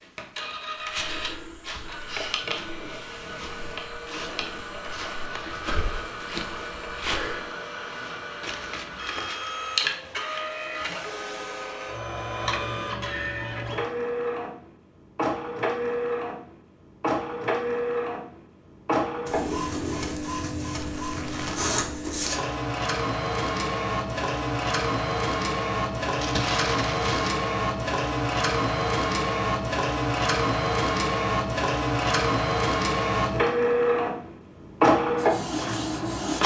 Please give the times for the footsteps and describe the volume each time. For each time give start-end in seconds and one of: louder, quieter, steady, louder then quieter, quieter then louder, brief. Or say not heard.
0.8-7.5 louder.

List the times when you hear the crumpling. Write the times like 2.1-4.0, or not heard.
8.4-9.4, 20.8-21.7, 26.1-27.4.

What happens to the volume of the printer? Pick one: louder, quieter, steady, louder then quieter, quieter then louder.
louder.